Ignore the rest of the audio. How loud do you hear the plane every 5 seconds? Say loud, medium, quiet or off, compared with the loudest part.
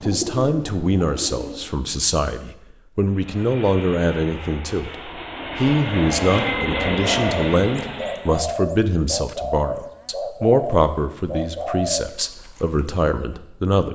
medium, loud, off.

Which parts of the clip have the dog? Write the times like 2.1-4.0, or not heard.
not heard.